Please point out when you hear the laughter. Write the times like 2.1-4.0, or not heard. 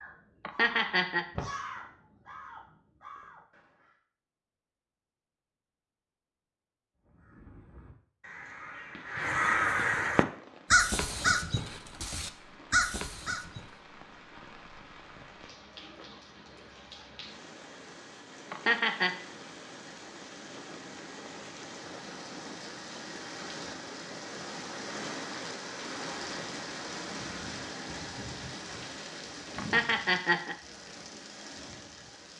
0.5-1.2, 18.5-19.1, 29.6-30.6.